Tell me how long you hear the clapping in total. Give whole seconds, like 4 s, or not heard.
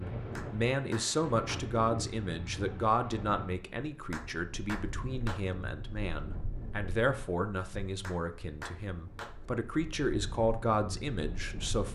4 s.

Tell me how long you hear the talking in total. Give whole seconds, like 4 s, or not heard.
12 s.